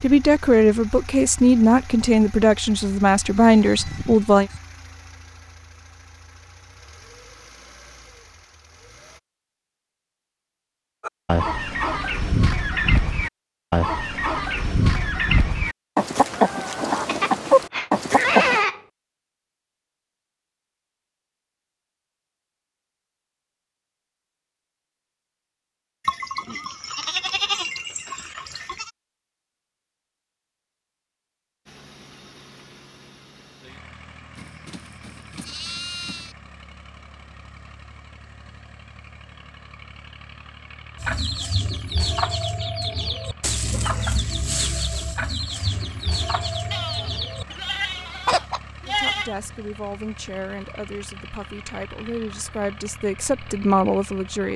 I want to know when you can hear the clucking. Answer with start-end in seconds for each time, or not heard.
11.1-18.6, 41.0-48.6.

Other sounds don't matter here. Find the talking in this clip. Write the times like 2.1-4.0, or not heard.
0.0-4.5, 48.9-54.5.